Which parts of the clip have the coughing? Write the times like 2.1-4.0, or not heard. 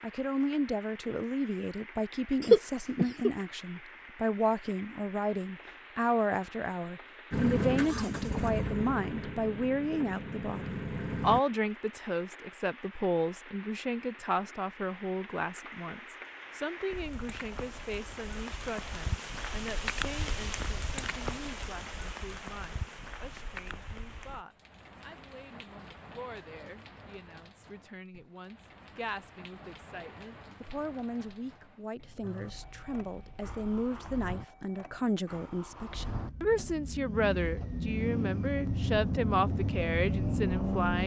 2.4-3.3.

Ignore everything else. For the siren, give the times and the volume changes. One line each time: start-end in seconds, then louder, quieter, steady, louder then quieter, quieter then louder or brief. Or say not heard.
not heard.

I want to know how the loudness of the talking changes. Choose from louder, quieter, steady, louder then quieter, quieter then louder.
quieter then louder.